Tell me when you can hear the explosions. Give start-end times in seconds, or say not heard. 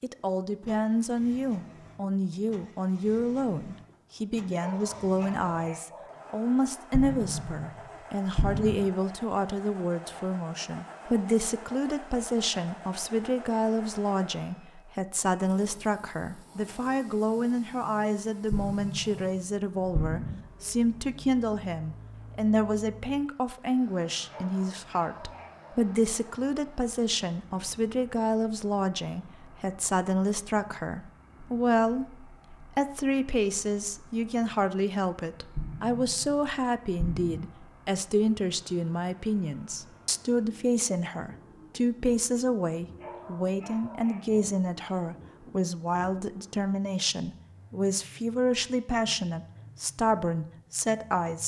6.9-7.8, 8.3-8.8, 18.5-20.4, 35.5-37.4.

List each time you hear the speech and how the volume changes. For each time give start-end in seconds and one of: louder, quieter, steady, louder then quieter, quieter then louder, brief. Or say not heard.
0.0-51.4 steady.